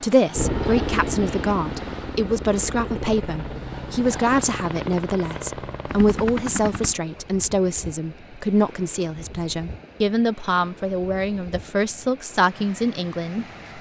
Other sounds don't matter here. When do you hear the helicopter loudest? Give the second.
1 s.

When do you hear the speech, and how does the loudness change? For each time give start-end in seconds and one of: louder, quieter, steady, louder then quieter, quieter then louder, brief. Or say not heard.
0.0-13.4 steady.